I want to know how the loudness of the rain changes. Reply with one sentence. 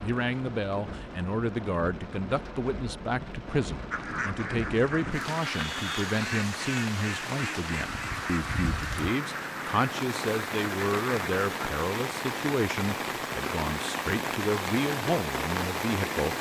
The loudness of the rain goes up.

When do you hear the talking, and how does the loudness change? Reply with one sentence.
You can hear the talking from 0.0 to 16.3 s, at a steady volume.